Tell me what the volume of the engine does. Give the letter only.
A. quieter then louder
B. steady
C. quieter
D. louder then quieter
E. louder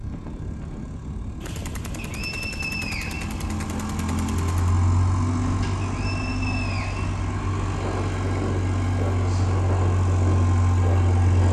E.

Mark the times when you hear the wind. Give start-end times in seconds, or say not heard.
0.0-11.4.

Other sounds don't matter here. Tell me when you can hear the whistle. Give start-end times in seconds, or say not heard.
1.9-3.3, 5.8-7.2.